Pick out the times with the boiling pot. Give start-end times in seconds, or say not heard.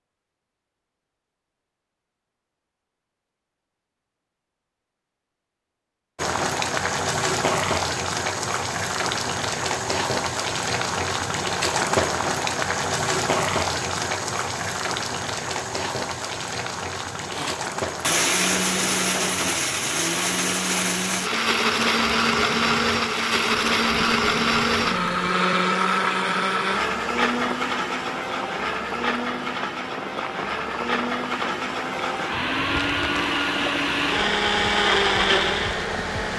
6.2-36.3.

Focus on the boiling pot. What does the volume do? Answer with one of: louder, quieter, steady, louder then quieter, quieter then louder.
quieter.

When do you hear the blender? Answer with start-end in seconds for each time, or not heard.
17.3-36.3.